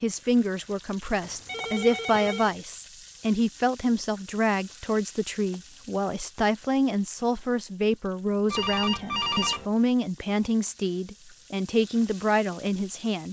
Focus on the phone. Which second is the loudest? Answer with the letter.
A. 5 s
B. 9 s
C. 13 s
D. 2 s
B.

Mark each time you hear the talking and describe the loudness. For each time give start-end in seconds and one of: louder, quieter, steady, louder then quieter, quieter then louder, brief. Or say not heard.
0.0-13.2 steady.